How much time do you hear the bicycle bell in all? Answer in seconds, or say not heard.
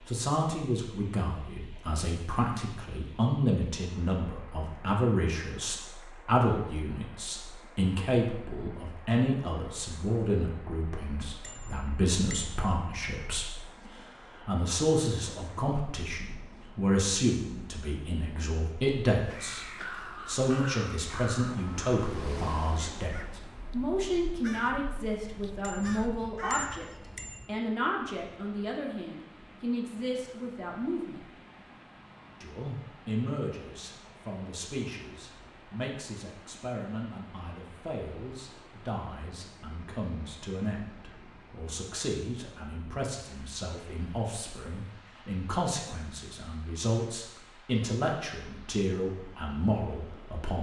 3 s.